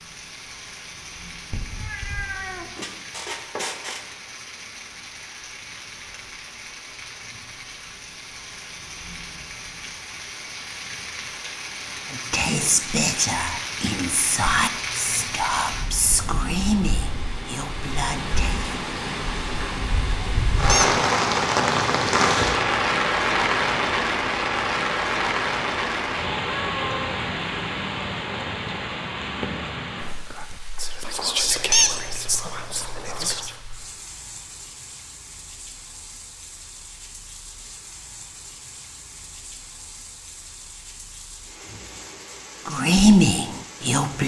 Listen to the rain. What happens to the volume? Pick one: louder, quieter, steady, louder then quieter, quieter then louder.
louder then quieter.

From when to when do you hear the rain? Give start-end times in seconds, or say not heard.
0.0-44.2.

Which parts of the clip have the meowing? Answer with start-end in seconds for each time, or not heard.
1.5-2.8, 26.4-27.0.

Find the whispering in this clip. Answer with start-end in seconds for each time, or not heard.
12.1-18.8, 30.3-33.6, 42.6-44.2.